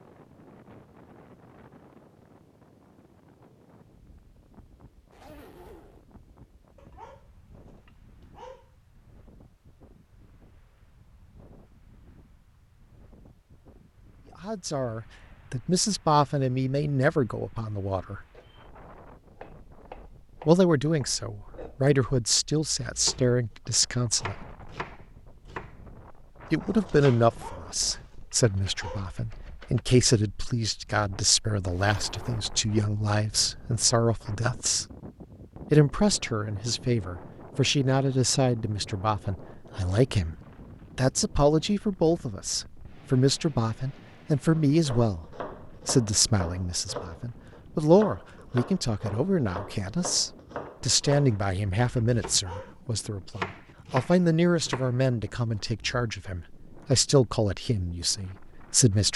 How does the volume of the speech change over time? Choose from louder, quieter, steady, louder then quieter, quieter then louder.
steady.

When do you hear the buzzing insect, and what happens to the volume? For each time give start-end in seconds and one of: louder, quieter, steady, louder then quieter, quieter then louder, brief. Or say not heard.
not heard.